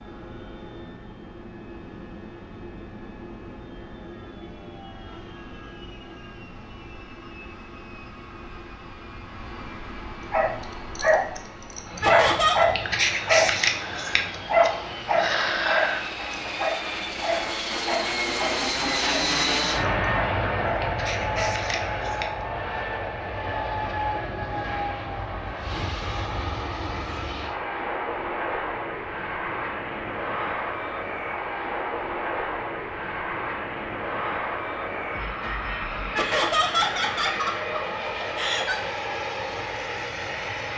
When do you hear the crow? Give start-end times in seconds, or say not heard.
not heard.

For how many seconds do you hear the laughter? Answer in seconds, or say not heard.
3 s.